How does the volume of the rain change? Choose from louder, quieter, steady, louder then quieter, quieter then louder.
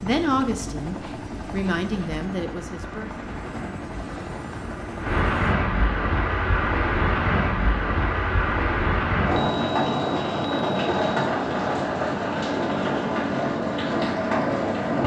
louder.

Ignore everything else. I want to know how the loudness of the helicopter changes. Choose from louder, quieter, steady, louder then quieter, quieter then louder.
steady.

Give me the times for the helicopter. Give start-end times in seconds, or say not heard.
0.0-5.5.